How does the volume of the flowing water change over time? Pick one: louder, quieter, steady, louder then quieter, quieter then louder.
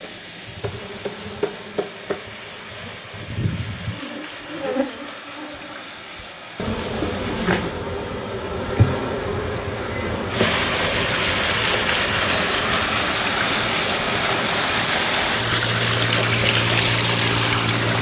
louder.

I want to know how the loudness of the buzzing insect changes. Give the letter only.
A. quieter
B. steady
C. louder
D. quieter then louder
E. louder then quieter
E.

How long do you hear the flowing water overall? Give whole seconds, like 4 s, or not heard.
18 s.